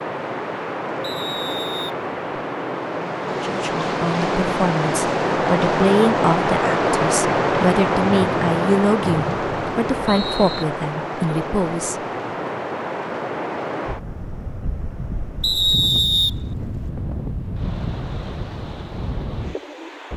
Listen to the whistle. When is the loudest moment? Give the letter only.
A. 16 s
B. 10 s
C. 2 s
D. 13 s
A.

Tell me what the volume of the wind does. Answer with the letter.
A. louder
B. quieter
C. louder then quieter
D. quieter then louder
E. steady
C.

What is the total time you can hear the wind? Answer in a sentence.
You can hear the wind for 20 seconds altogether.